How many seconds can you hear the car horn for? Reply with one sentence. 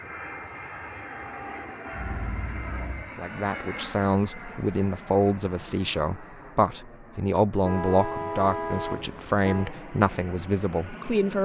The car horn can be heard for 3 seconds in total.